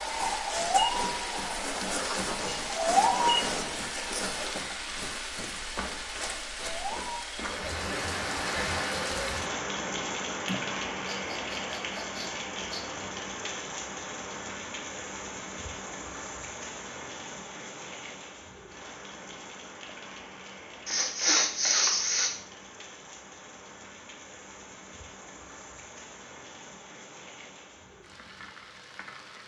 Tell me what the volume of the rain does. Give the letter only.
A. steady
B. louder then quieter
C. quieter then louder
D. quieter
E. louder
D.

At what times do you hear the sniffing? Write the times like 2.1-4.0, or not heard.
10.4-12.8, 20.9-22.4.